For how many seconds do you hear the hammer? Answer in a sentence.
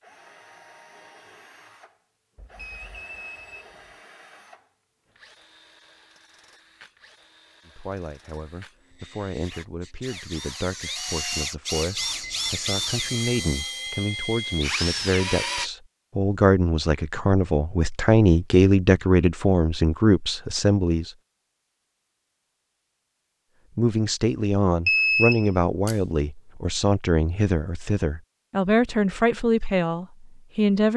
The hammer can't be heard in this clip.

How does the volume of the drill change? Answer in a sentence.
The loudness of the drill goes up.